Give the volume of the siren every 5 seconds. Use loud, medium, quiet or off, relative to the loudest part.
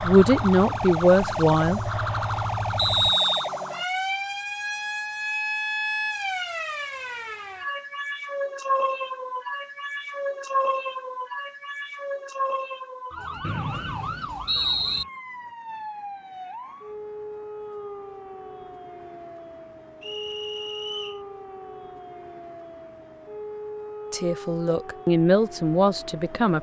loud, loud, loud, medium, medium, medium.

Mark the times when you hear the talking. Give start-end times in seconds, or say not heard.
0.0-1.8, 24.1-26.5.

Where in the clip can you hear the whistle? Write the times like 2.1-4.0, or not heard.
2.8-3.5, 13.4-15.1, 20.0-21.2.